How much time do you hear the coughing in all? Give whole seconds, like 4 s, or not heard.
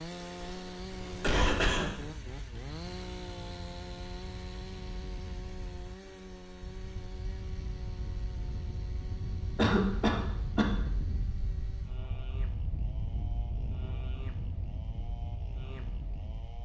3 s.